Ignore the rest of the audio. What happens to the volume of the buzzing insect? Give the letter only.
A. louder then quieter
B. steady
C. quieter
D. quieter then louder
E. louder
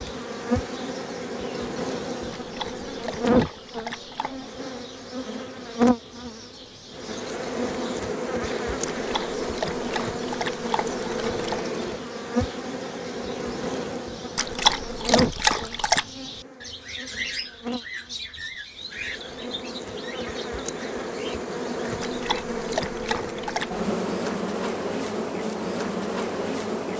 D.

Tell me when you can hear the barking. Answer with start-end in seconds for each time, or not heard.
2.4-4.5, 8.8-11.7, 14.3-16.1, 22.0-23.8.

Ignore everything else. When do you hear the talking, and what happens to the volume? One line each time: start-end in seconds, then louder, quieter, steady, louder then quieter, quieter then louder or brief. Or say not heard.
not heard.